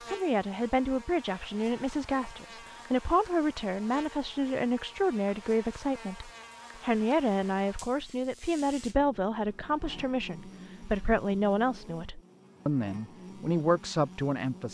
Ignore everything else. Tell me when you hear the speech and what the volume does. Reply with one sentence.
You can hear the speech from 0.1 to 14.7 s, at a steady volume.